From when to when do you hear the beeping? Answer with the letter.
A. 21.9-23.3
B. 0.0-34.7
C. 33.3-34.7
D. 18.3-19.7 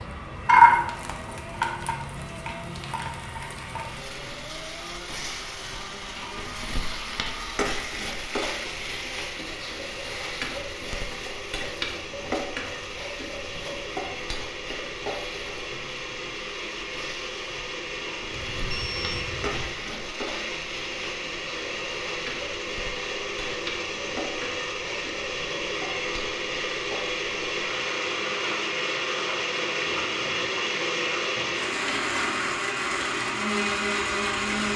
D.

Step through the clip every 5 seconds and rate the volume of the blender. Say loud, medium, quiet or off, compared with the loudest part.
quiet, quiet, medium, medium, medium, loud, loud.